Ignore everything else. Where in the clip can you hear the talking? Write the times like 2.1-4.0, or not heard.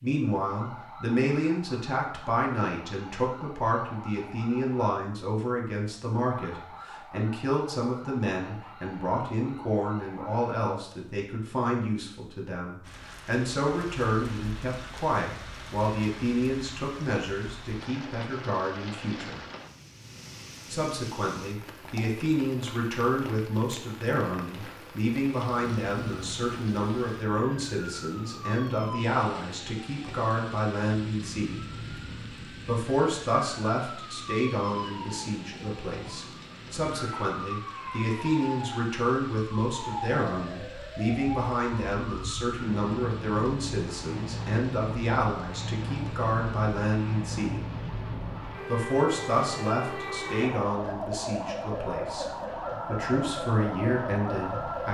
0.0-19.4, 20.7-31.6, 32.6-47.6, 48.6-52.2, 52.9-54.9.